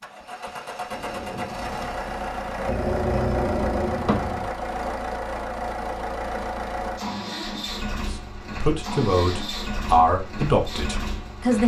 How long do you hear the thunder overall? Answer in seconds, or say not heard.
2 s.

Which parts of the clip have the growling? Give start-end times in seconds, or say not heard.
2.6-4.5.